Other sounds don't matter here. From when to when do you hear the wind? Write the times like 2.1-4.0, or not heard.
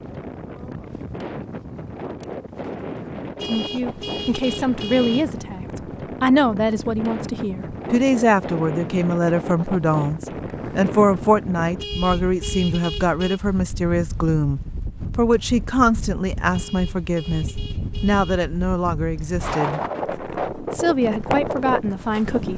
0.0-22.5.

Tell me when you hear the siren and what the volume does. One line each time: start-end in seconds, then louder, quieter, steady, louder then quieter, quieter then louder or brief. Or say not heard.
not heard.